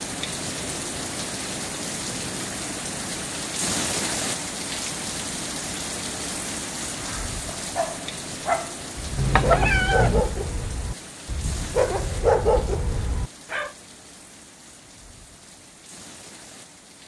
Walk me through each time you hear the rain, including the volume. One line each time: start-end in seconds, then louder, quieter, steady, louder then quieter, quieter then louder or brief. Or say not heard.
0.0-17.0 quieter.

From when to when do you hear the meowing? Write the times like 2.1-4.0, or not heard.
9.2-10.2.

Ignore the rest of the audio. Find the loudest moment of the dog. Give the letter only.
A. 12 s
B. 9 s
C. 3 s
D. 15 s
A.